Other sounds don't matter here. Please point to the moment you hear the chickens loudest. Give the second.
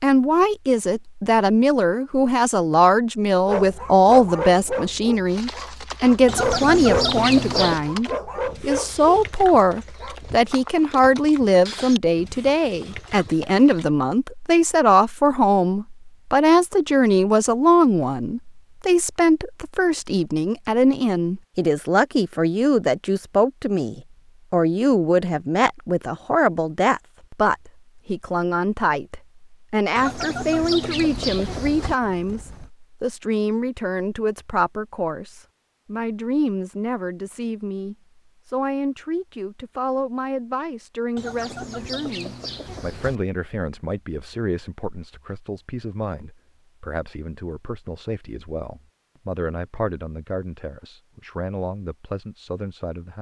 7 s.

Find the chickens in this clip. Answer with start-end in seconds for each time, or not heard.
6.2-7.8, 29.9-31.9, 41.1-43.2.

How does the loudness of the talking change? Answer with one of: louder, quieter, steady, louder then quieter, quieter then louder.
quieter.